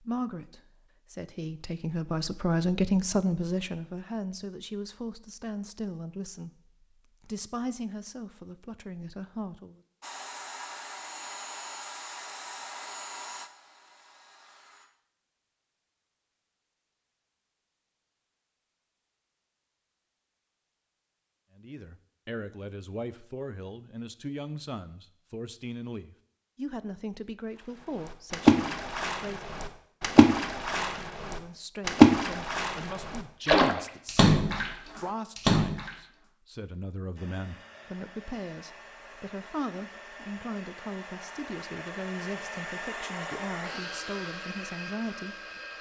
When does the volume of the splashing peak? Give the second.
32 s.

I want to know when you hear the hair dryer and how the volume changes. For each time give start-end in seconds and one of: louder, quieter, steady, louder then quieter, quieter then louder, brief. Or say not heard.
10.0-14.9 quieter
37.1-45.7 louder.